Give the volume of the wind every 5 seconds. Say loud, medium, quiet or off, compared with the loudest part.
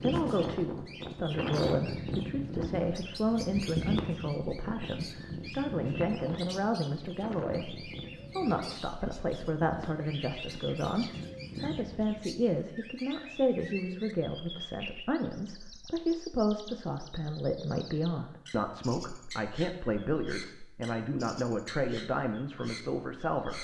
loud, medium, medium, off, off.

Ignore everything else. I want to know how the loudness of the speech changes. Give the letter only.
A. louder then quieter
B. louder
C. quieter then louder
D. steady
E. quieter
D.